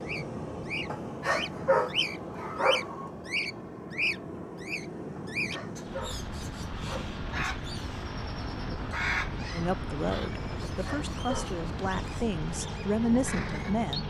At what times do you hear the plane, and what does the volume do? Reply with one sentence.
You can hear the plane from 0.0 to 14.0 s, at a steady volume.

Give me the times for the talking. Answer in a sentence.
You can hear the talking from 9.5 to 14.0 s.